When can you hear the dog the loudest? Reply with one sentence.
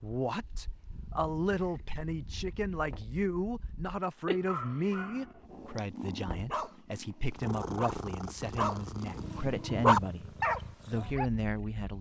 The volume of the dog peaks at 10 seconds.